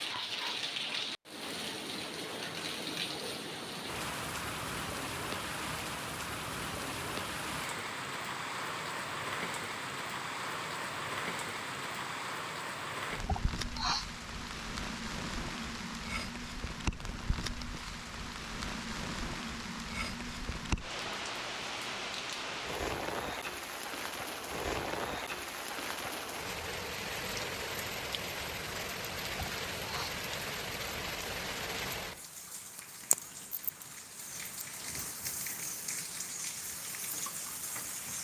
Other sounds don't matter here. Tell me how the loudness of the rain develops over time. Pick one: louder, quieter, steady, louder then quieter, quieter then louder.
steady.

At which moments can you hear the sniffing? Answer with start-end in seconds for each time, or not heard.
0.1-0.6, 13.2-14.1, 29.4-30.1.